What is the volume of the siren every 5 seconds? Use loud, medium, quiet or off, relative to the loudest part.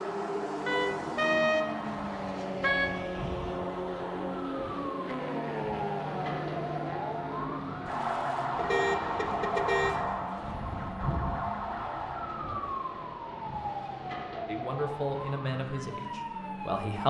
medium, loud, loud, medium.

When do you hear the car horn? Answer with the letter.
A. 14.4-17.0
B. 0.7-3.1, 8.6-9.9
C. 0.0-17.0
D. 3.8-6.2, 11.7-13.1
B.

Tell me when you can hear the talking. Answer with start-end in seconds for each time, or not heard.
14.4-17.0.